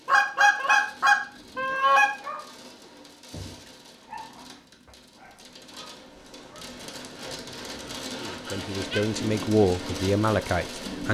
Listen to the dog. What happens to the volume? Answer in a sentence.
The volume of the dog goes up, then down.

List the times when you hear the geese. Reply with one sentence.
The geese can be heard from 0.1 to 2.0 s and from 7.0 to 9.0 s.